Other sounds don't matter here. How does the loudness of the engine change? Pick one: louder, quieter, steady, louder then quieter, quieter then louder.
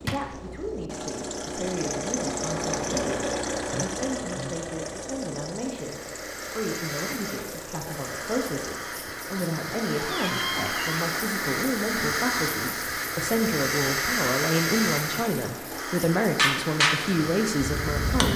quieter.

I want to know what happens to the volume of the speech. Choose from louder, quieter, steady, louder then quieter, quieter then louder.
louder.